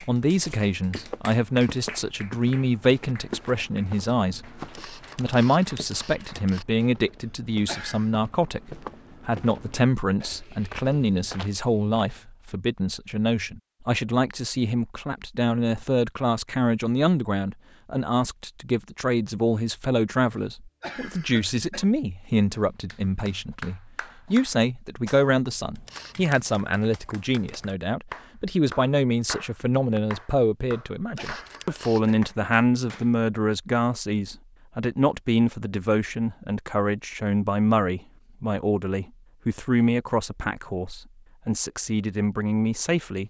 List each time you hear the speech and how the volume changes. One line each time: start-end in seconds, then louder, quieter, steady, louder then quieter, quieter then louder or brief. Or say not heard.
0.0-43.2 steady.